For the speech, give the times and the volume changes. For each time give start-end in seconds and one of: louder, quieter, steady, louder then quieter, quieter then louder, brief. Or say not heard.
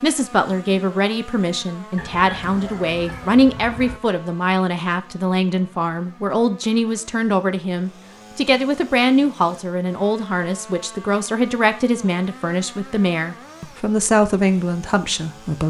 0.0-15.6 steady.